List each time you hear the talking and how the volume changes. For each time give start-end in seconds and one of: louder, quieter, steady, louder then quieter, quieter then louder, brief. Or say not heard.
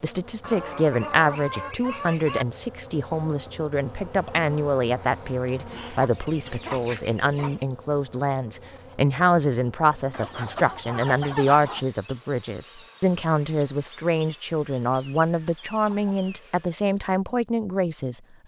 0.0-18.2 steady.